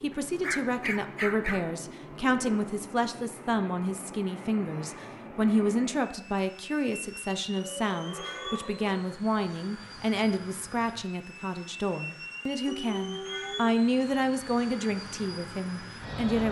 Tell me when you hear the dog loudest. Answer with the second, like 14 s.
1 s.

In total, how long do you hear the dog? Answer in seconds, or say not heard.
4 s.